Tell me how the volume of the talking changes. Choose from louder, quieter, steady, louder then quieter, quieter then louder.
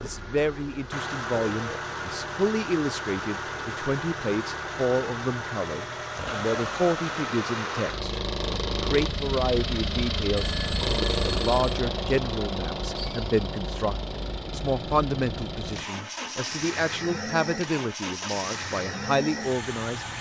steady.